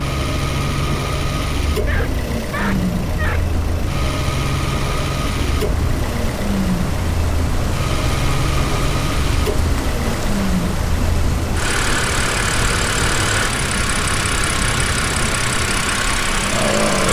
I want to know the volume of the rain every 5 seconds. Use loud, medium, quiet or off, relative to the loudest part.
medium, loud, loud, loud.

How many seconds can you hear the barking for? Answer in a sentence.
You can hear the barking for 2 seconds altogether.